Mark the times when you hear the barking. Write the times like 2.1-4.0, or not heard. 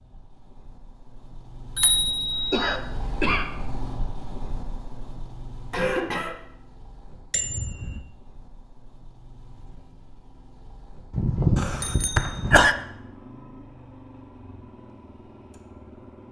not heard.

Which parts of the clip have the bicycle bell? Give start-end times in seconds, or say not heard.
1.8-2.7, 7.3-8.0, 11.1-12.7.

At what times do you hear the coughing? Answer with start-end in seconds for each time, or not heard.
2.5-3.5, 5.7-6.3, 11.6-12.8.